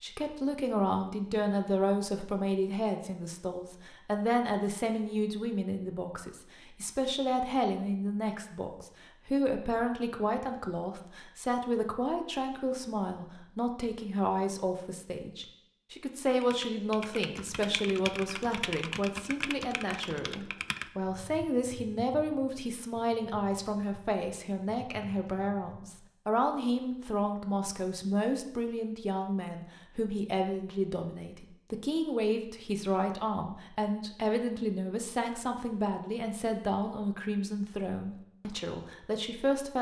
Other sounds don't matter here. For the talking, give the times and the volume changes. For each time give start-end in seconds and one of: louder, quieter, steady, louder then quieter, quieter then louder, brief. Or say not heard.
0.0-39.7 steady.